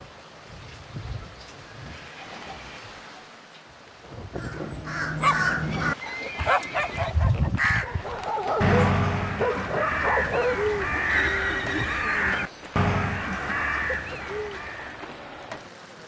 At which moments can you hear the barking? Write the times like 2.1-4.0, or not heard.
5.2-11.0.